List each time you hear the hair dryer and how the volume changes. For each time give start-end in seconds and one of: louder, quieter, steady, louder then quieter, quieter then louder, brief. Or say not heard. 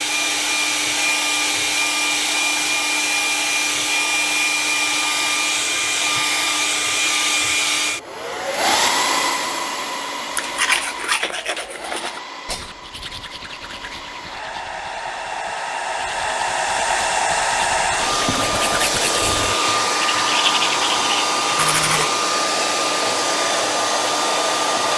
0.0-24.9 quieter then louder.